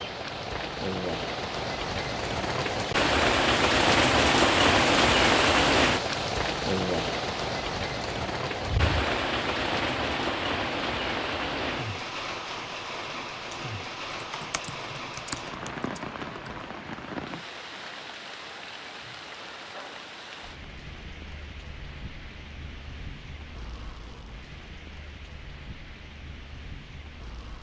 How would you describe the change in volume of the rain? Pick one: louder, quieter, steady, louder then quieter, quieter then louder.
quieter.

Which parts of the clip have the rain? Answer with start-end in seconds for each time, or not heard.
0.0-27.5.